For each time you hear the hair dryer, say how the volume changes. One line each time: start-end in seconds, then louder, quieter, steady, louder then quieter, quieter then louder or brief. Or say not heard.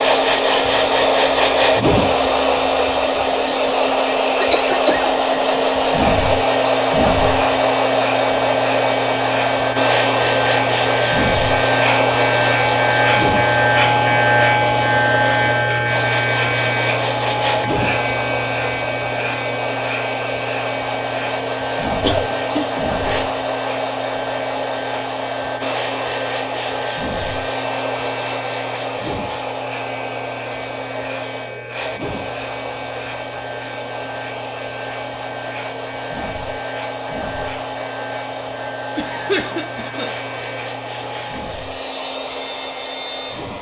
0.0-43.5 quieter.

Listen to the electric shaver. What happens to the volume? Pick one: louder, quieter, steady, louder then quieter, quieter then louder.
quieter.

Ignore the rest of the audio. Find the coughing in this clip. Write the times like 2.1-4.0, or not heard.
4.3-5.1, 22.0-23.3, 39.0-40.1.